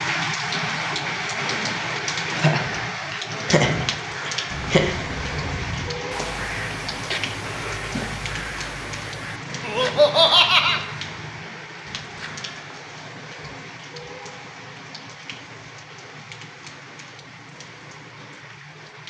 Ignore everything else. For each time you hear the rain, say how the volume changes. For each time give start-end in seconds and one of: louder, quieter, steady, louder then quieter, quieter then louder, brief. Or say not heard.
0.0-19.0 quieter.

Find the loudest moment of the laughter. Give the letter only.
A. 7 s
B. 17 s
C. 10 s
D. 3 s
C.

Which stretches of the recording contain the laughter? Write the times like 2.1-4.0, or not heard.
2.4-5.0, 9.6-10.8.